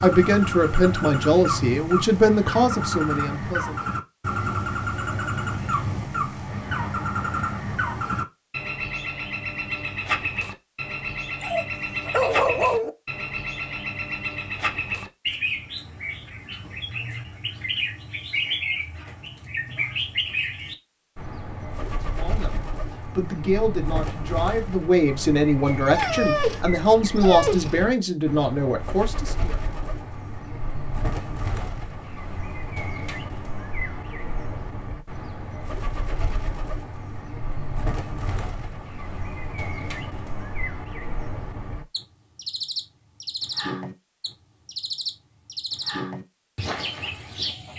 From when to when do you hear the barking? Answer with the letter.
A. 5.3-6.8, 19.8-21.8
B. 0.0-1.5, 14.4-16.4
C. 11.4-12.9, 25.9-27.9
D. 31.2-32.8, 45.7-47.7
C.